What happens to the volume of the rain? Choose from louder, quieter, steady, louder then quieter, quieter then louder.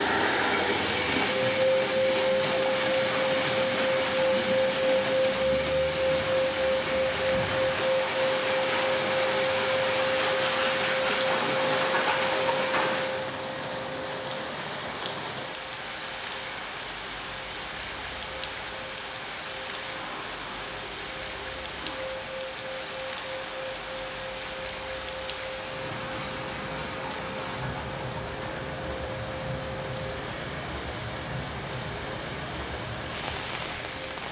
steady.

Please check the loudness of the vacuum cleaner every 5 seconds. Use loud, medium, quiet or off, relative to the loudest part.
loud, loud, loud, quiet, quiet, quiet, quiet.